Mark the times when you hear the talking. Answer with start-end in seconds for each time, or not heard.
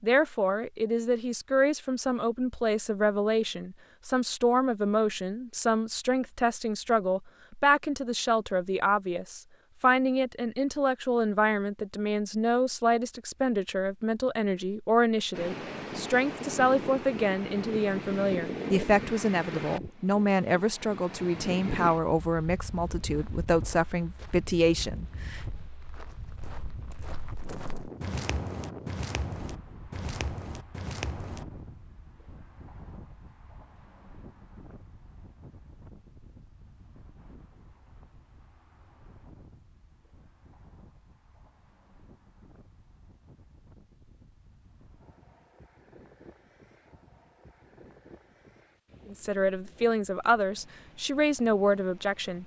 0.0-25.4, 49.0-52.4.